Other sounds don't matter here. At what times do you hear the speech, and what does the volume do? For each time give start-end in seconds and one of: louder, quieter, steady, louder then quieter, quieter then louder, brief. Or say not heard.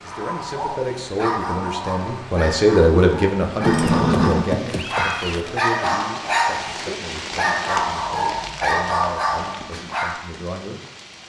0.0-10.8 louder then quieter.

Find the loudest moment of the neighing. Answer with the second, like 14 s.
4 s.